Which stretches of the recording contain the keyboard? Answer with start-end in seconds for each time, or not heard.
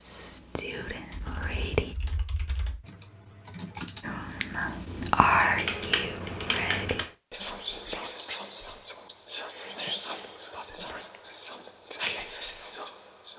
1.1-7.1.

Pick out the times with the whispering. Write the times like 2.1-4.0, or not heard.
0.0-1.9, 4.0-13.3.